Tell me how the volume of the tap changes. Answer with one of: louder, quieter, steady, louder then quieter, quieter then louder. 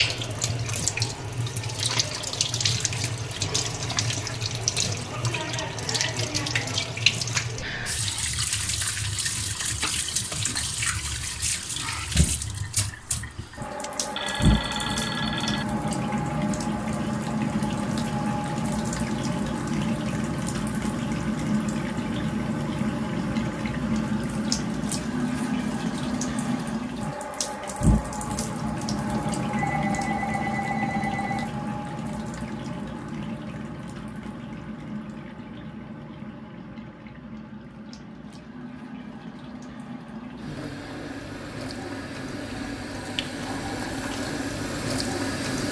quieter.